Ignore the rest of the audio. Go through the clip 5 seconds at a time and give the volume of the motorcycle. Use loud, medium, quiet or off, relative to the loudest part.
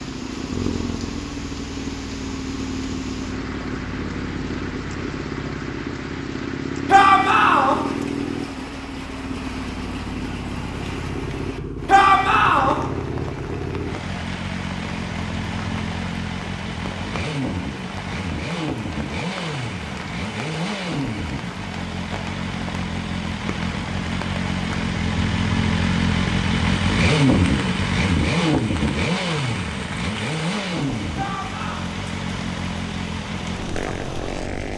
medium, medium, medium, medium, medium, loud, medium.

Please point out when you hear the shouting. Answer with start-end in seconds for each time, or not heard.
6.8-7.8, 11.8-12.8, 31.1-31.8.